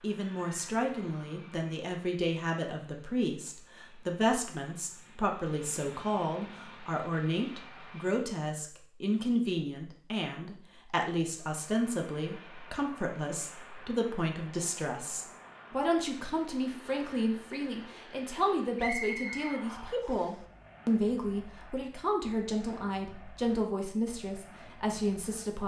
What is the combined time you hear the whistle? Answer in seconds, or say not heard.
2 s.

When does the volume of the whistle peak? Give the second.
19 s.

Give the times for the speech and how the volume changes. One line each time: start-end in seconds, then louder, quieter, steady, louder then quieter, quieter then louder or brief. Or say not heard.
0.0-25.6 steady.